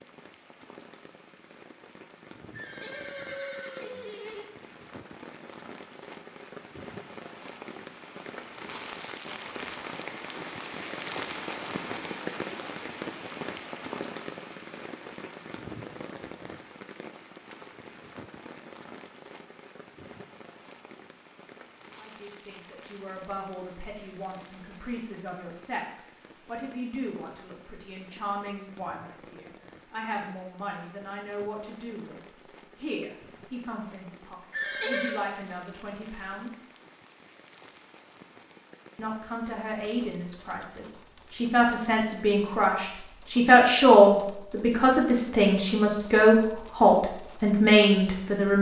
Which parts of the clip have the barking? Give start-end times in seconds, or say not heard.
not heard.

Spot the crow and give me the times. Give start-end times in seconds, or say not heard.
not heard.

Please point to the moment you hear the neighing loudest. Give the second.
35 s.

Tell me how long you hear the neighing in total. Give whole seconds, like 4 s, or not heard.
3 s.